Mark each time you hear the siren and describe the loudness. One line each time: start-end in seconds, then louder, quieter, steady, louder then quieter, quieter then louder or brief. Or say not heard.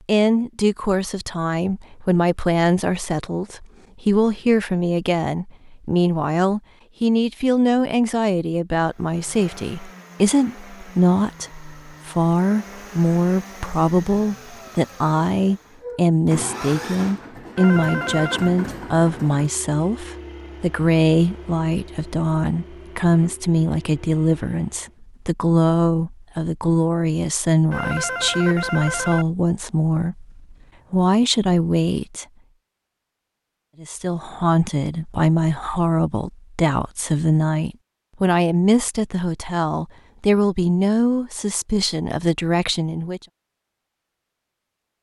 not heard.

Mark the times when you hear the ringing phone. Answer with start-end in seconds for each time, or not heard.
17.6-18.5, 27.7-29.2.